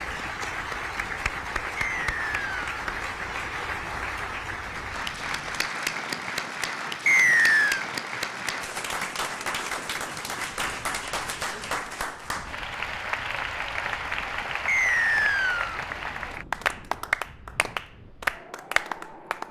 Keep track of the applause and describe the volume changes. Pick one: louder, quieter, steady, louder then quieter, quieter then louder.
steady.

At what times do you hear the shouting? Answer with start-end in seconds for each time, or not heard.
not heard.